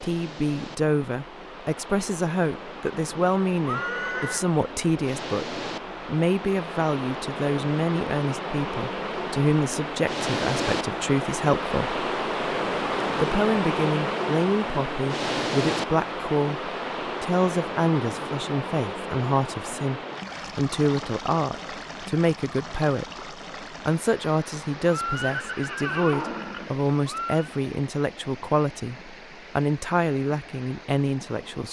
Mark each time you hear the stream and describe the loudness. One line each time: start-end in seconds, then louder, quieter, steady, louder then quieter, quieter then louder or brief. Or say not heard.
0.0-31.6 louder then quieter.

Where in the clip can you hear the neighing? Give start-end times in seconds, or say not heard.
3.6-4.5, 24.9-27.5.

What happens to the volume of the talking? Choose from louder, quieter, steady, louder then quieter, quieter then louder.
steady.